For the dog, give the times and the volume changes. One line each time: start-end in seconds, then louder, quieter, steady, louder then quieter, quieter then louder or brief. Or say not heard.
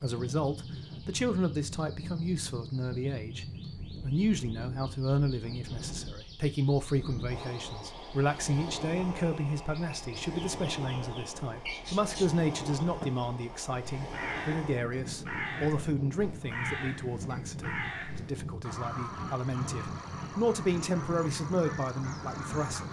not heard.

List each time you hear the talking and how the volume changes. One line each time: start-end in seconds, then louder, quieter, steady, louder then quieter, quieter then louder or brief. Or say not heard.
0.0-22.8 steady.